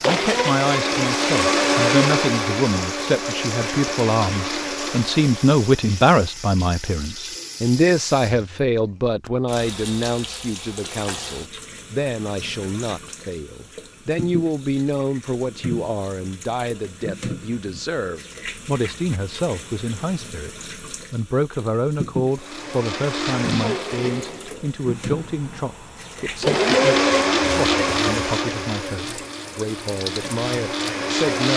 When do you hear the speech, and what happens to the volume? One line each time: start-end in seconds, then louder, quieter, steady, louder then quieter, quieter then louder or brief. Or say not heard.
0.0-31.5 quieter.